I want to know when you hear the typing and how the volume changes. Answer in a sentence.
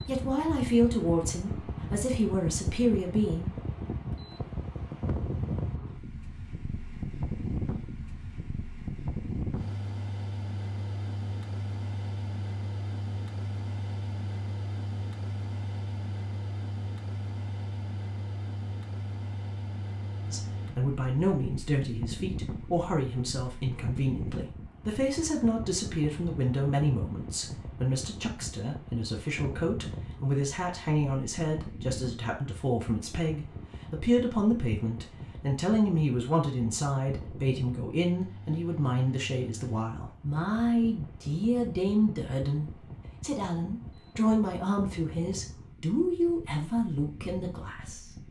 You can't hear the typing here.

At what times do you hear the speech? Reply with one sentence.
The speech can be heard from 0.1 to 3.5 s and from 20.2 to 48.0 s.